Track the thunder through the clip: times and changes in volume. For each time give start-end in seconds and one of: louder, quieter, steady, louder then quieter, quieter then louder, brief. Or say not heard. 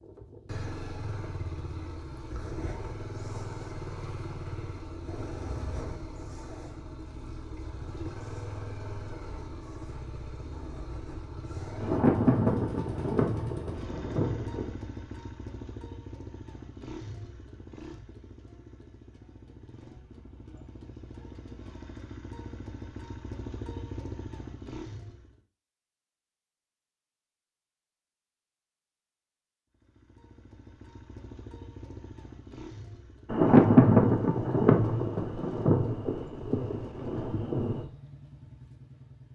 11.8-14.7 brief
33.3-37.9 quieter.